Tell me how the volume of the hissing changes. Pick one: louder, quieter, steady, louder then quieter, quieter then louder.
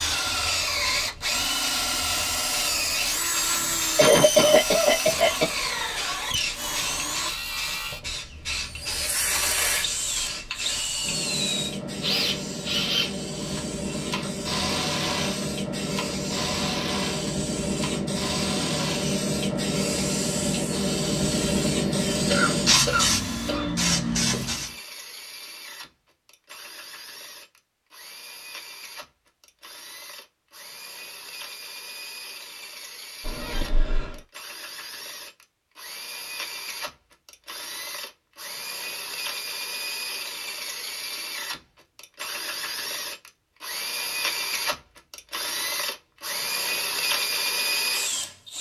louder.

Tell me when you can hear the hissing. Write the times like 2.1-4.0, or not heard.
0.0-24.7.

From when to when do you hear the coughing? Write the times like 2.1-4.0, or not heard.
4.0-5.5, 22.3-23.6, 33.2-34.2.